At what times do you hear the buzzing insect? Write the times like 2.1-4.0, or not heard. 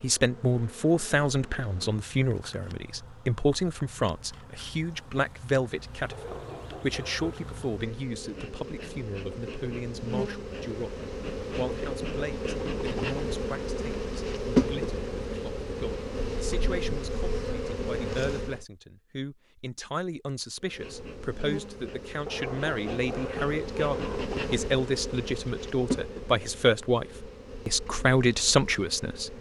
0.0-18.6, 20.6-29.3.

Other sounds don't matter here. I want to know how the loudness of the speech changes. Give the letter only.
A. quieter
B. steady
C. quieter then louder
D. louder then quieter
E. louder
C.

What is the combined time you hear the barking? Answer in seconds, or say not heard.
3 s.